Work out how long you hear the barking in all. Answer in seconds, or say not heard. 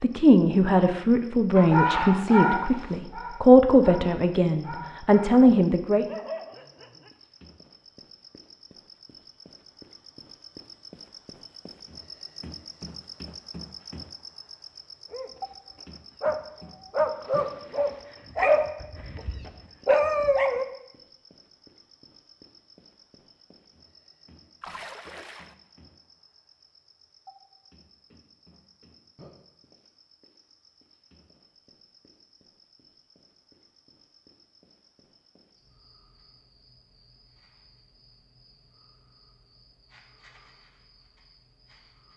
11 s.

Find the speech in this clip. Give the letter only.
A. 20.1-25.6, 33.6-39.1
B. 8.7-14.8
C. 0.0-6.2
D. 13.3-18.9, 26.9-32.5
C.